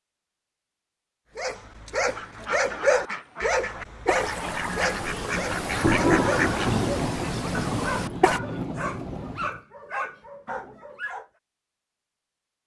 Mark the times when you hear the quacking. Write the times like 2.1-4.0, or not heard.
1.9-8.4.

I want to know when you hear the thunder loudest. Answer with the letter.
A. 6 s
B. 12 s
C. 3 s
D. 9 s
A.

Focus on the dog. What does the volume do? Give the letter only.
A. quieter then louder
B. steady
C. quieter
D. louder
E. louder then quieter
C.